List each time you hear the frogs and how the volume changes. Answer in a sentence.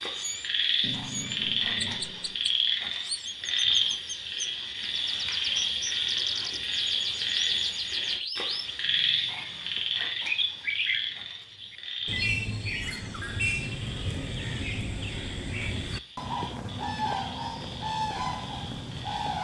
You can hear the frogs from 0.0 to 19.3 s, getting quieter.